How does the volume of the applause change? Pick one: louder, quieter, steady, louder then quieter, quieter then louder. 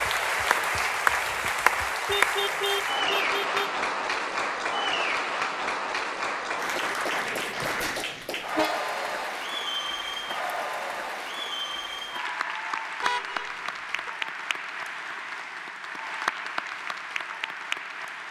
quieter.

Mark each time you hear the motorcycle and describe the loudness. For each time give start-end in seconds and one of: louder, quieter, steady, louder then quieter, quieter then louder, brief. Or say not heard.
not heard.